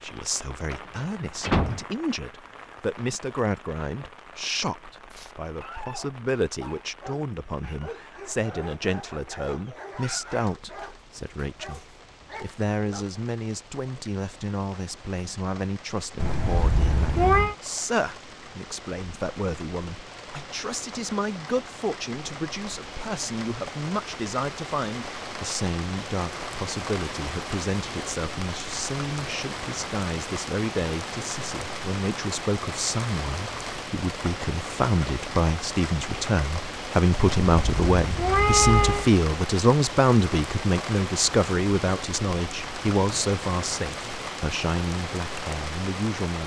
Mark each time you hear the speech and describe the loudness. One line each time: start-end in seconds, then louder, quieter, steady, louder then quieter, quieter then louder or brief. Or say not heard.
0.0-46.4 louder.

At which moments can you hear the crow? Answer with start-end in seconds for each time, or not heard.
not heard.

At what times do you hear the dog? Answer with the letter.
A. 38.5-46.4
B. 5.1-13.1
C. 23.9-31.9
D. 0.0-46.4
B.